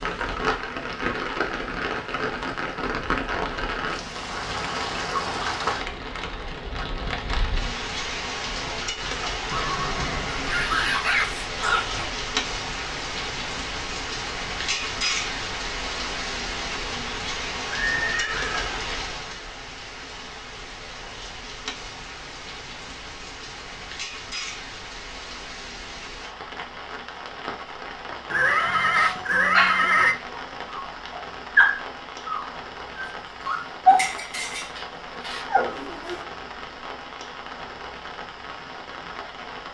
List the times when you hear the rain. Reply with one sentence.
The rain can be heard from 0.0 to 39.7 s.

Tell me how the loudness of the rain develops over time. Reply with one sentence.
The loudness of the rain goes down.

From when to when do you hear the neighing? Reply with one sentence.
The neighing can be heard from 9.5 to 11.1 s, from 17.8 to 18.8 s and from 28.3 to 30.1 s.